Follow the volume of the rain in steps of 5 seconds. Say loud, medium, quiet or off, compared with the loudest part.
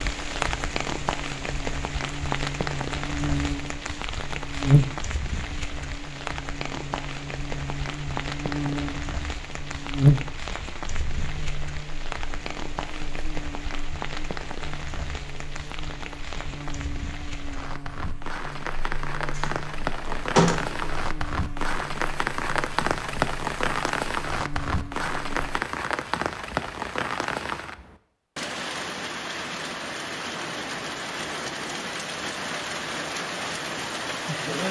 loud, medium, medium, medium, loud, loud, loud.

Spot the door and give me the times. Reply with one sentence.
You can hear the door from 19.4 to 20.9 s.